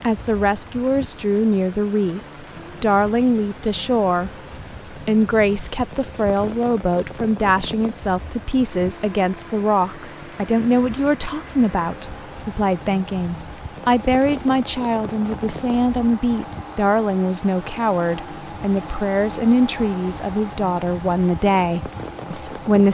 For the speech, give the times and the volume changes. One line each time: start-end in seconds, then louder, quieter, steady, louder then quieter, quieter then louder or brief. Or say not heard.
0.0-2.2 brief
2.8-4.3 brief
4.9-22.8 steady.